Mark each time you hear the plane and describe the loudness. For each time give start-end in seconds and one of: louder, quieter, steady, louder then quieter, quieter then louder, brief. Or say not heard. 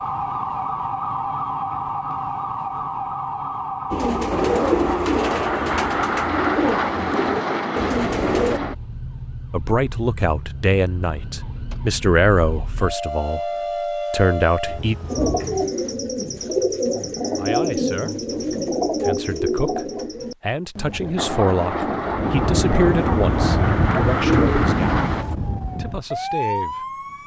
4.3-8.8 steady
21.1-25.2 steady.